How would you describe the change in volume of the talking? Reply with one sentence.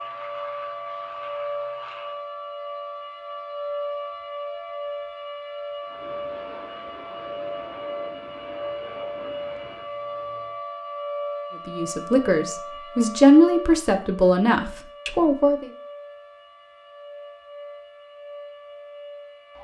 The loudness of the talking goes up, then down.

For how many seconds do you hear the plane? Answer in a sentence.
You can hear the plane for 7 seconds altogether.